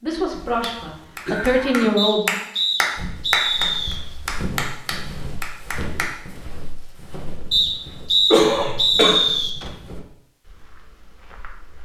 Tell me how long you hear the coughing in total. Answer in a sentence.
The coughing can be heard for 3 seconds in total.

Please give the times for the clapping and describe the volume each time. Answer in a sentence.
You can hear the clapping from 0.6 to 6.2 s, getting louder then quieter.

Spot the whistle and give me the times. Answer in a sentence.
The whistle can be heard from 1.9 to 4.0 s and from 7.5 to 9.5 s.